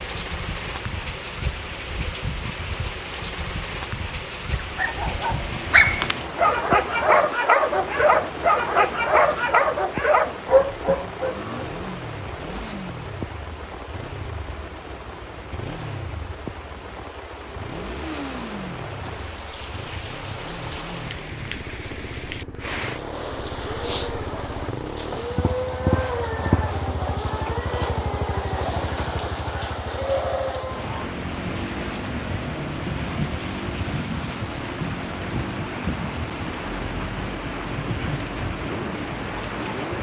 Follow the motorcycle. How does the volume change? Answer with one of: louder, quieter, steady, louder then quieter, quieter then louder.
louder then quieter.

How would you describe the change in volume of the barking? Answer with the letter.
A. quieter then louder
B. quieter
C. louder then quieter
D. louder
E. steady
E.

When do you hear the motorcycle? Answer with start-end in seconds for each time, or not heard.
11.2-39.9.